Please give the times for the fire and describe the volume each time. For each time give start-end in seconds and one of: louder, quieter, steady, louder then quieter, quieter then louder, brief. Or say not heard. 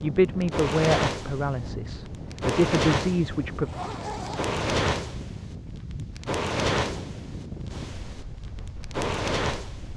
0.1-9.9 steady.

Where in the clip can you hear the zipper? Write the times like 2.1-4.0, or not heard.
3.6-4.5.